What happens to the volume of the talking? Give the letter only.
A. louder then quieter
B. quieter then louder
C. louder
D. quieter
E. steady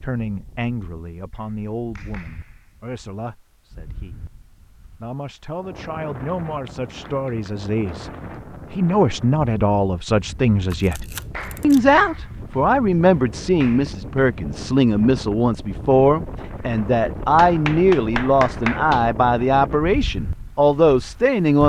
C.